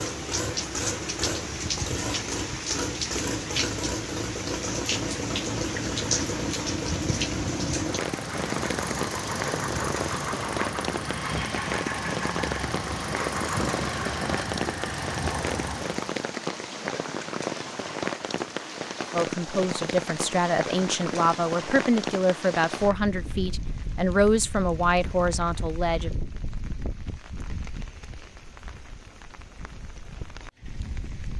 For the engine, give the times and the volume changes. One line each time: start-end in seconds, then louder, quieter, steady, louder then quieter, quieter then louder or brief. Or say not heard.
0.0-16.1 steady.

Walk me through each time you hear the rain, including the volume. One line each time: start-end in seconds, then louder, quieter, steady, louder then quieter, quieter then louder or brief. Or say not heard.
0.0-31.3 quieter.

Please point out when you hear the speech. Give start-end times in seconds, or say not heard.
19.1-26.1.